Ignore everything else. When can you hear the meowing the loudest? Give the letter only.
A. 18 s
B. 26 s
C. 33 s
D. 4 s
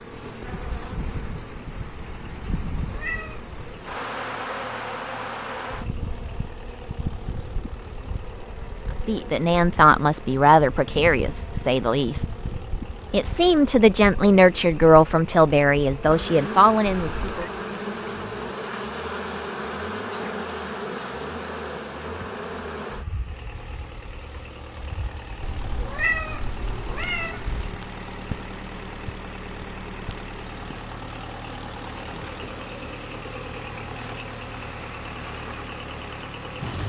B.